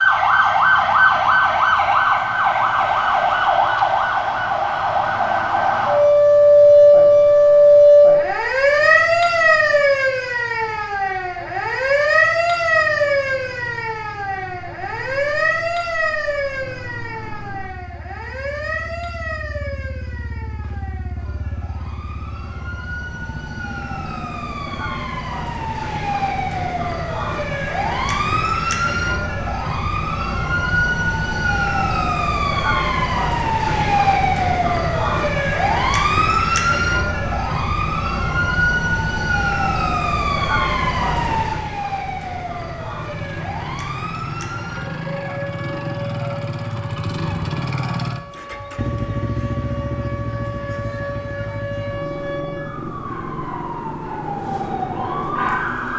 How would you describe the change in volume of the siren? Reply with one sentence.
The loudness of the siren goes down.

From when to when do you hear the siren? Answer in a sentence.
You can hear the siren from 0.0 to 55.9 s.